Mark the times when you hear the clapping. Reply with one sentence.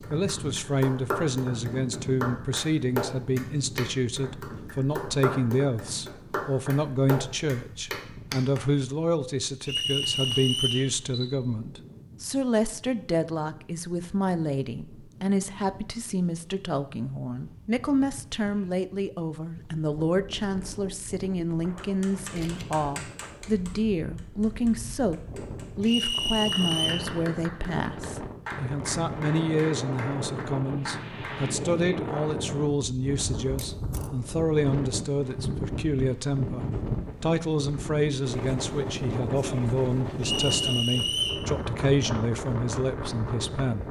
The clapping can be heard from 0.0 to 8.6 s and from 21.8 to 31.4 s.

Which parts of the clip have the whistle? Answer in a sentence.
You can hear the whistle from 9.7 to 10.9 s, from 25.9 to 27.1 s and from 40.2 to 41.5 s.